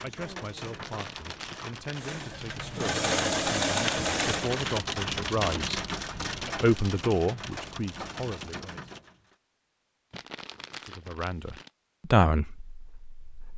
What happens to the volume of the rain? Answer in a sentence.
The volume of the rain goes up, then down.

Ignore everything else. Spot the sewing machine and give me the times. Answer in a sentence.
You can hear the sewing machine from 1.9 to 4.7 s.